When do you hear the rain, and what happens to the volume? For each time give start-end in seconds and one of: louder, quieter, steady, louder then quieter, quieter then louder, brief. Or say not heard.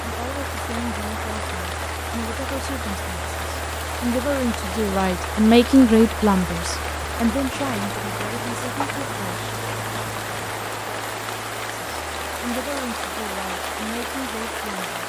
0.0-15.0 steady.